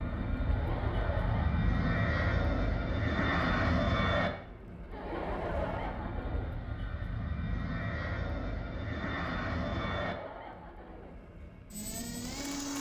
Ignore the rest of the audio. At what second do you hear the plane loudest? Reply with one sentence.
The loudest moment of the plane is at 4 seconds.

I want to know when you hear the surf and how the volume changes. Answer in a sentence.
You can't hear the surf here.